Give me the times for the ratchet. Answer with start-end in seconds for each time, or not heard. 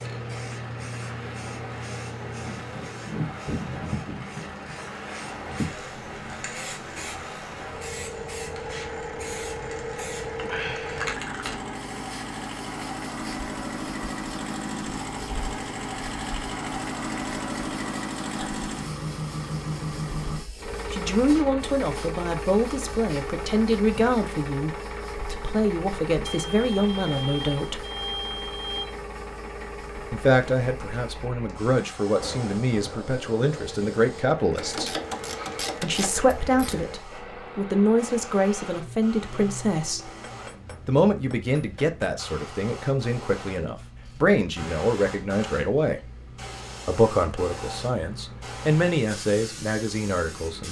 34.5-36.9.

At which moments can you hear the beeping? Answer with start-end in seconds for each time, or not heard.
26.2-28.9.